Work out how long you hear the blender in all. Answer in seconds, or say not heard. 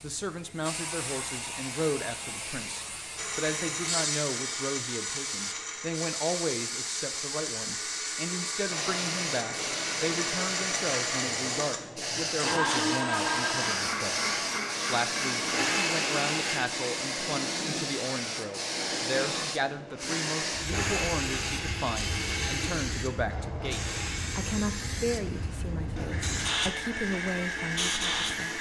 22 s.